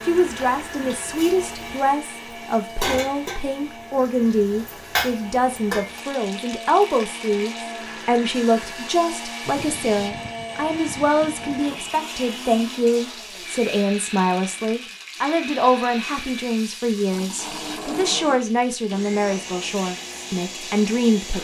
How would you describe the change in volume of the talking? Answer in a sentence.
The loudness of the talking stays about the same.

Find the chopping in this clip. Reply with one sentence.
The chopping can't be heard in this clip.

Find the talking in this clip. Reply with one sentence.
You can hear the talking from 0.1 to 21.3 s.